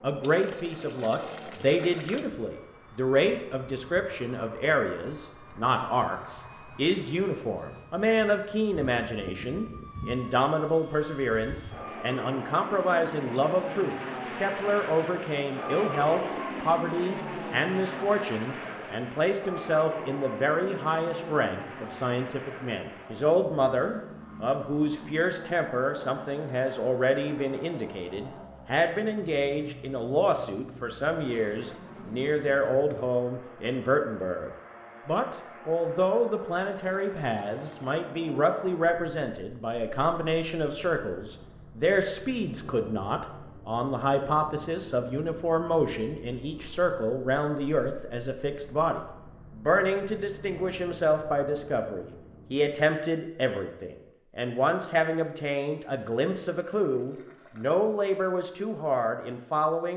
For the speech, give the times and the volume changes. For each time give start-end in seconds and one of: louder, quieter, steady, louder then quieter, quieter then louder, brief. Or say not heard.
0.0-59.9 steady.